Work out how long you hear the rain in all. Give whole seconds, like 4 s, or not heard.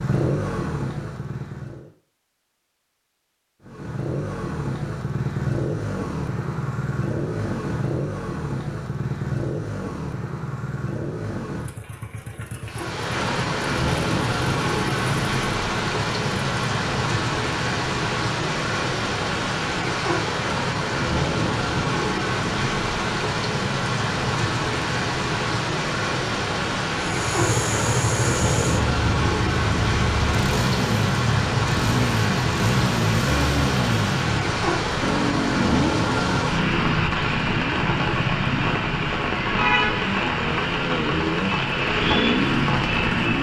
31 s.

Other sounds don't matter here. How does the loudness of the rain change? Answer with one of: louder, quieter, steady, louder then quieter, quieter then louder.
steady.